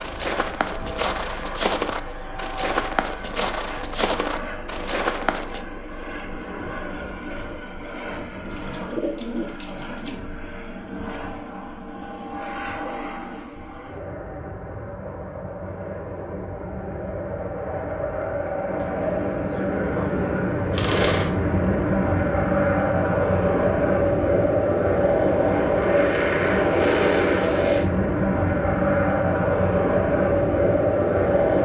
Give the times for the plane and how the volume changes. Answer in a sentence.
The plane can be heard from 0.0 to 31.5 s, getting louder.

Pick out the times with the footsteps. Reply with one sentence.
You can hear the footsteps from 0.0 to 5.7 s.